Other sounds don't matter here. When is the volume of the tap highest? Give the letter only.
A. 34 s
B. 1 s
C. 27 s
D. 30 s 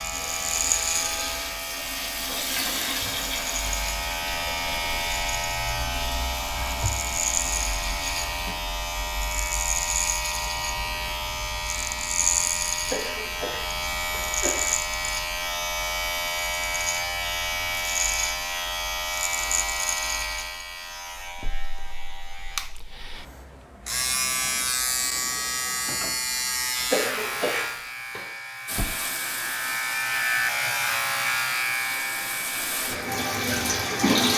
A.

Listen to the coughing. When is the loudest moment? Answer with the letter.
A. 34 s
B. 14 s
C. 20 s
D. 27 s
D.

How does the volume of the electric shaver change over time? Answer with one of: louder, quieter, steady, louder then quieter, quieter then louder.
steady.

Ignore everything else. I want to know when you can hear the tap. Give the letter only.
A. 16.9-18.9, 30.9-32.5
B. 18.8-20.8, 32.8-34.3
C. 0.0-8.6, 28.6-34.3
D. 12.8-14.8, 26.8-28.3
C.